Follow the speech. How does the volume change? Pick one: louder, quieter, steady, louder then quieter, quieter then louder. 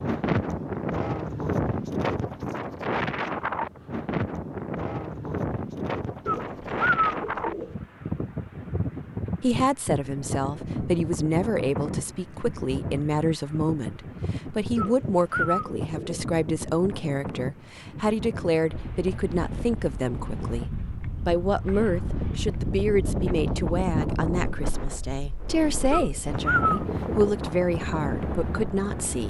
steady.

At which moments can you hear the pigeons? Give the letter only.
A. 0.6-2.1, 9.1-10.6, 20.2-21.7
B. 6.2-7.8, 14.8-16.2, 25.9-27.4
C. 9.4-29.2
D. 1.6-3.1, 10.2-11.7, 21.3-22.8
B.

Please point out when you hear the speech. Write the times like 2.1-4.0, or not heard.
9.4-29.2.